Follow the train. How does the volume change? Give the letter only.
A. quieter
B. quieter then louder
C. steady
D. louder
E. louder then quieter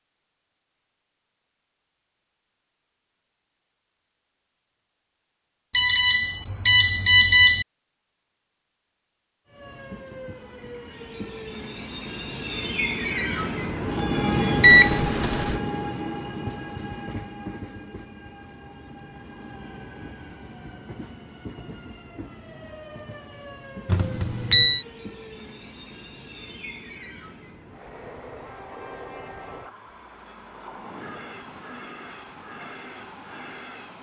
A.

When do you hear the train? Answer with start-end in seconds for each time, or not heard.
9.4-33.9.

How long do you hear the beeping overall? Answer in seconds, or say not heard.
4 s.